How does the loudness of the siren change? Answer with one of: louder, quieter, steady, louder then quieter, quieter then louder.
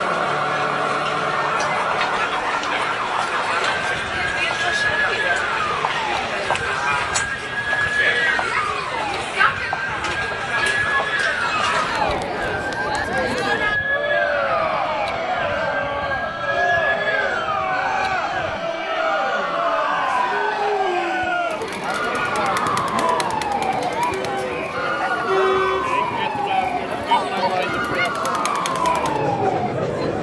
steady.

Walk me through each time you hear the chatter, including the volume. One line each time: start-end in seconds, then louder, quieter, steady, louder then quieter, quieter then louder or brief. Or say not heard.
0.0-30.1 steady.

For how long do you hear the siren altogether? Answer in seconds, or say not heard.
30 s.